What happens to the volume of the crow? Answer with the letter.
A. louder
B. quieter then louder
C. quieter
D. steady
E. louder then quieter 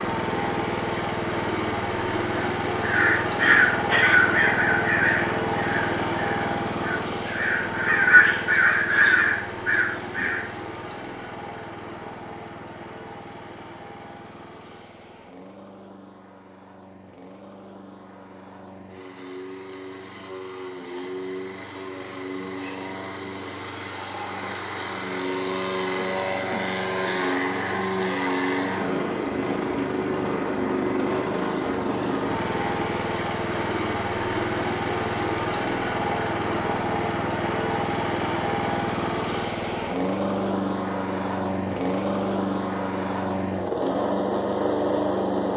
B.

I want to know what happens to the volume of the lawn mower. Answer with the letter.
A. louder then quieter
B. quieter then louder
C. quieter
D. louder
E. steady
B.